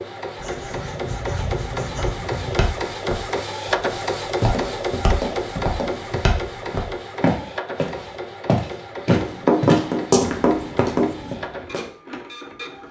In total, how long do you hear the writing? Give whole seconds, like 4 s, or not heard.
6 s.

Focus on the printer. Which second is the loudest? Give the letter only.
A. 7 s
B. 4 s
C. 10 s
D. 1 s
B.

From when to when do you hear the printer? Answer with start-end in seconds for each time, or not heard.
0.0-12.8.